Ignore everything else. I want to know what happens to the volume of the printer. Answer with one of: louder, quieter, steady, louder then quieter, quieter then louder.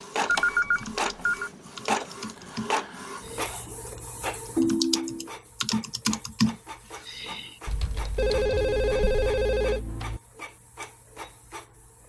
quieter.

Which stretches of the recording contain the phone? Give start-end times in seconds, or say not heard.
0.2-1.5, 4.5-5.3, 8.2-10.2.